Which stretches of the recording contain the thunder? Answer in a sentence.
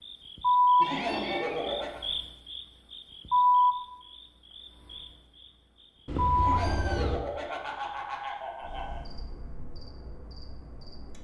The thunder can't be heard in this clip.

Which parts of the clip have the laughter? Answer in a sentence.
The laughter can be heard from 0.8 to 2.0 s and from 6.3 to 9.1 s.